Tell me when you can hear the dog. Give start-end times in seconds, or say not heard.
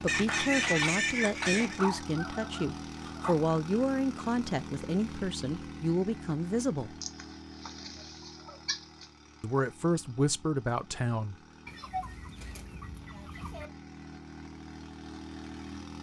1.6-3.4.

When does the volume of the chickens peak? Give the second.
1 s.